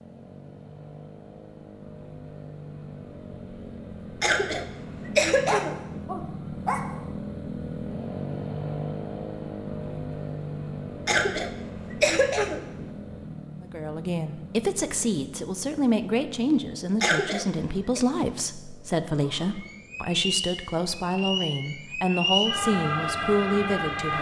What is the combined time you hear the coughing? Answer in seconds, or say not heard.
5 s.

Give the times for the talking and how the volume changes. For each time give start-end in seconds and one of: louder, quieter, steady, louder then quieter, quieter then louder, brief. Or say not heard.
13.6-24.1 steady.